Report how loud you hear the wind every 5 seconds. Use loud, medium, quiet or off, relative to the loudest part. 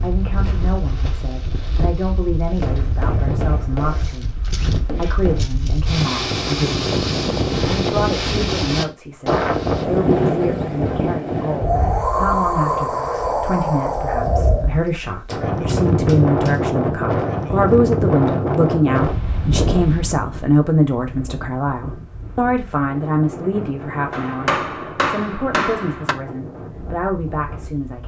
medium, loud, loud, loud, quiet, quiet.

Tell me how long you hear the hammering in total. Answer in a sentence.
The hammering can be heard for 6 seconds in total.